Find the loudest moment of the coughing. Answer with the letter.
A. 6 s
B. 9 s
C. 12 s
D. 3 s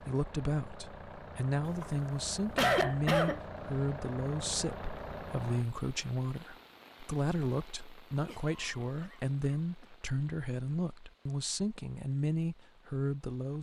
D.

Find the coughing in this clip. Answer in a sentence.
You can hear the coughing from 1.6 to 3.4 s and from 8.2 to 9.8 s.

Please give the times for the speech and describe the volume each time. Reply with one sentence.
You can hear the speech from 0.0 to 13.5 s, at a steady volume.